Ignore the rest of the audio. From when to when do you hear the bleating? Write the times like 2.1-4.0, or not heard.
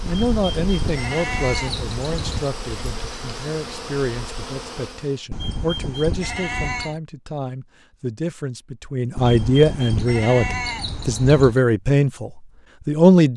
0.1-2.5, 5.3-7.0, 9.2-11.6.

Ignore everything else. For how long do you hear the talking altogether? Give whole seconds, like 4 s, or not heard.
13 s.